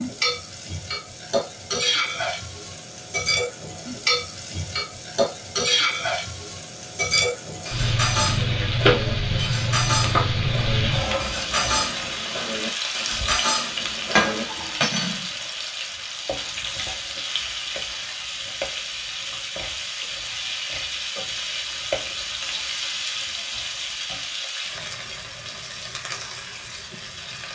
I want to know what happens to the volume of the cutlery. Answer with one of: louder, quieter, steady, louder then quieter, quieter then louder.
steady.